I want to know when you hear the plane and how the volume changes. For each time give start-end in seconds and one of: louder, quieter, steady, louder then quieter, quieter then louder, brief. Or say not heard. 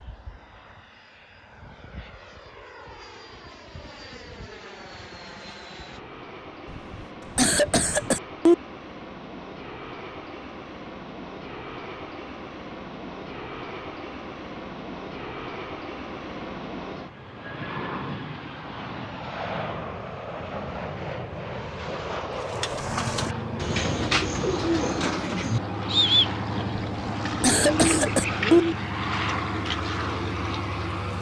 0.0-31.1 louder.